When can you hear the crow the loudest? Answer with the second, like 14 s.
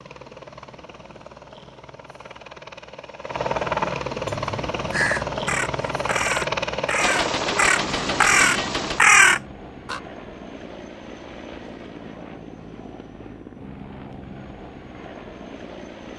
9 s.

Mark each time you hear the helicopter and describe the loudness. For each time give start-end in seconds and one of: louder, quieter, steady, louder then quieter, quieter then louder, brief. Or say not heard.
0.0-16.1 louder then quieter.